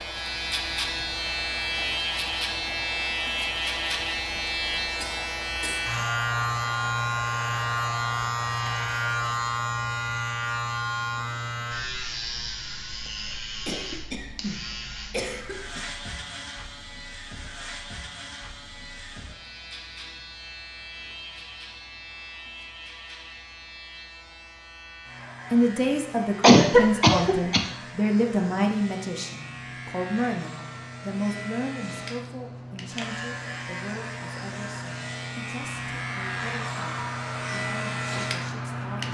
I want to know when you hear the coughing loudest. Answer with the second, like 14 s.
27 s.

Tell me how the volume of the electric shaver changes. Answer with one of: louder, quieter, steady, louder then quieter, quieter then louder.
quieter then louder.